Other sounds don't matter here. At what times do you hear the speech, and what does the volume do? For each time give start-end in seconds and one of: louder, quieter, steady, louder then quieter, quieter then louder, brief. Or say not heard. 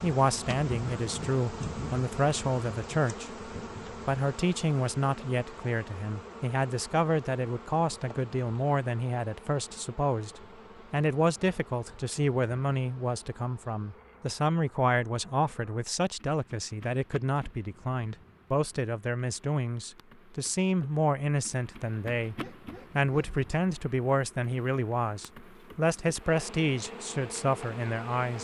0.0-28.3 steady.